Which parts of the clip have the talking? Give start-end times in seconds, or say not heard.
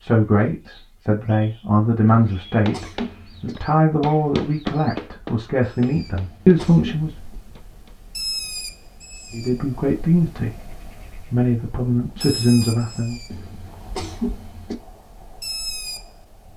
0.0-7.2, 9.3-13.2.